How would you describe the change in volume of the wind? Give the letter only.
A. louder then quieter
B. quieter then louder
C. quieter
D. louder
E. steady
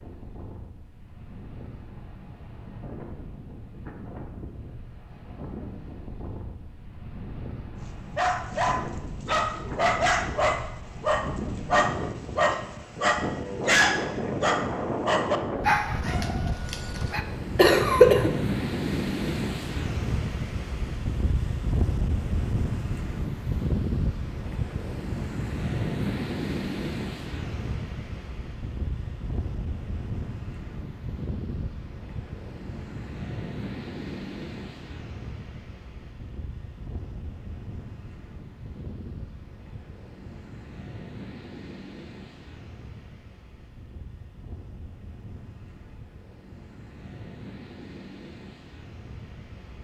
A.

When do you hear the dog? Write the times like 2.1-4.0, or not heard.
8.2-17.2.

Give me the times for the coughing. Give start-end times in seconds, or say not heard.
17.6-18.4.